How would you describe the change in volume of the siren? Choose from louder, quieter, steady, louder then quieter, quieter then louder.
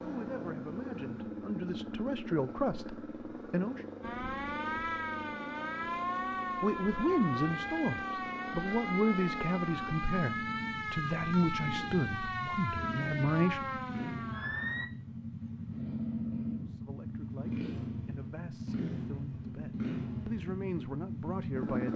steady.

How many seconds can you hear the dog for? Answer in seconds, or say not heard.
not heard.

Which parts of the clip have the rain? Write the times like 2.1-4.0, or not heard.
not heard.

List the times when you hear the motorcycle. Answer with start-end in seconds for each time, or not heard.
0.0-21.9.